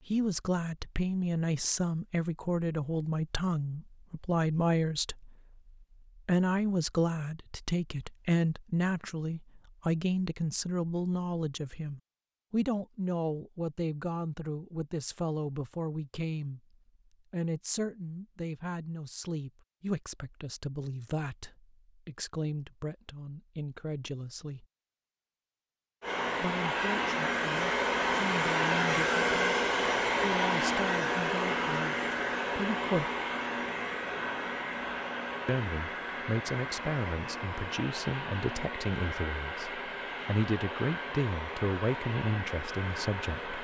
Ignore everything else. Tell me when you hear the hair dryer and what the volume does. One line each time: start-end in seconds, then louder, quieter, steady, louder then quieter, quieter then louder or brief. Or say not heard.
26.0-43.5 quieter.